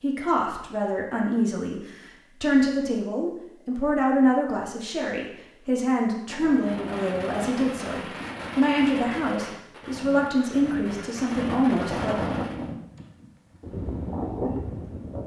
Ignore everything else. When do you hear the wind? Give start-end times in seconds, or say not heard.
6.2-15.2.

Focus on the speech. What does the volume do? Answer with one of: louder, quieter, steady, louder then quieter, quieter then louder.
steady.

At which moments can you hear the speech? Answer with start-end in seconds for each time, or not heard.
0.0-12.2.